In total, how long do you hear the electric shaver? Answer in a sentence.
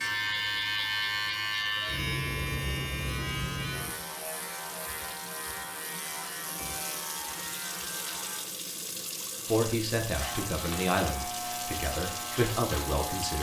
You can hear the electric shaver for 12 seconds altogether.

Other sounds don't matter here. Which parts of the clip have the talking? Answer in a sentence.
You can hear the talking from 9.4 to 13.3 s.